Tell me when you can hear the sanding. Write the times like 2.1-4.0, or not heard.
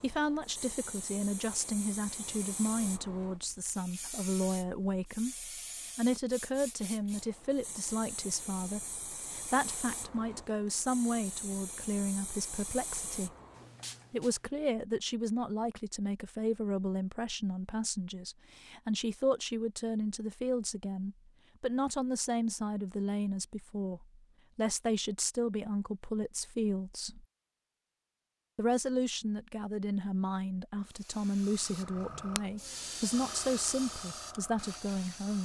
not heard.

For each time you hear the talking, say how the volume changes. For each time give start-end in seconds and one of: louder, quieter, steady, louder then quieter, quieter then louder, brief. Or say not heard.
0.0-13.3 steady
14.1-27.2 steady
28.6-35.4 steady.